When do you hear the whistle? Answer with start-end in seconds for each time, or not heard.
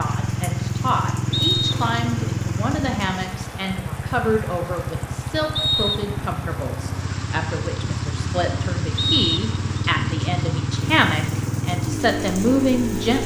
1.3-1.8, 5.5-6.0, 8.9-9.8.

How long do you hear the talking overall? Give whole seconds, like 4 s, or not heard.
13 s.